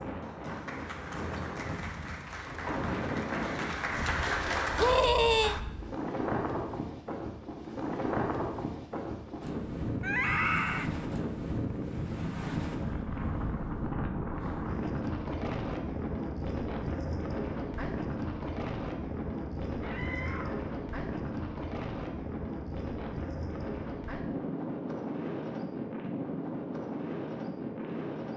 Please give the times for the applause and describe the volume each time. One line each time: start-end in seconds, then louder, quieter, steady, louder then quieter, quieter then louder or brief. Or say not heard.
0.0-5.6 louder.